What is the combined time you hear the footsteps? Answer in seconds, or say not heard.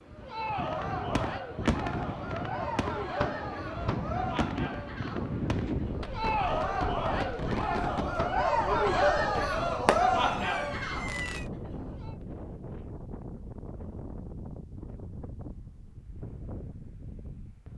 not heard.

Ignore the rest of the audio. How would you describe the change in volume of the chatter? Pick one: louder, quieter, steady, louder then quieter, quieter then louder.
louder.